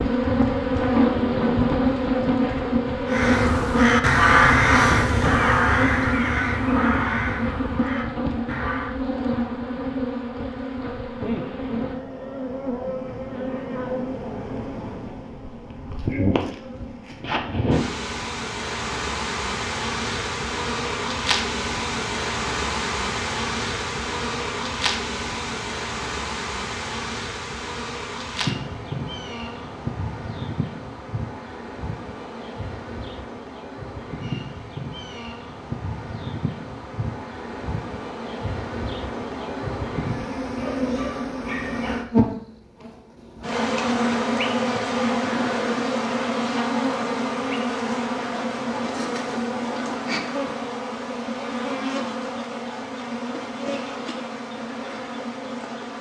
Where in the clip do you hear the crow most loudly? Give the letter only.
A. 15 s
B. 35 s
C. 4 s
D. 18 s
C.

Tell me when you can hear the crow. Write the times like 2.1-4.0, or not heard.
3.0-8.9.